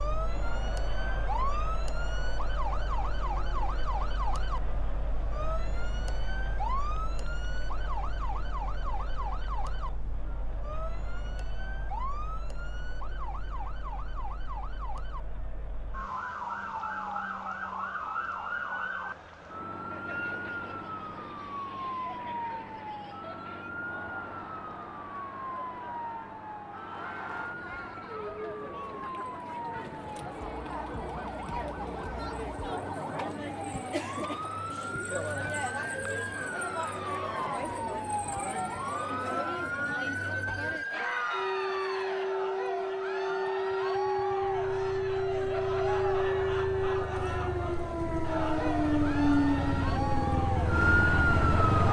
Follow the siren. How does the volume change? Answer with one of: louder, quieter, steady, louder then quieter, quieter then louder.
louder.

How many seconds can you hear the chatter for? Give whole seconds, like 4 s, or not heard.
52 s.